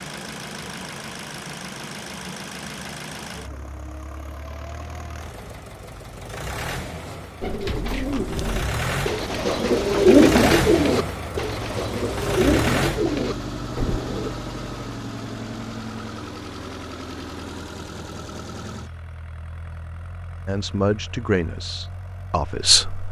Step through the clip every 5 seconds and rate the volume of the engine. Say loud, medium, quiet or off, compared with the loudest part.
medium, medium, loud, medium, quiet.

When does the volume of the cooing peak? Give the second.
10 s.